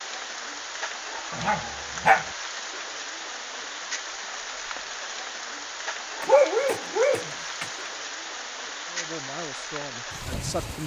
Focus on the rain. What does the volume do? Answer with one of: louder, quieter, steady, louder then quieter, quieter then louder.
steady.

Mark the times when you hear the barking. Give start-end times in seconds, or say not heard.
1.3-2.2, 6.2-7.7.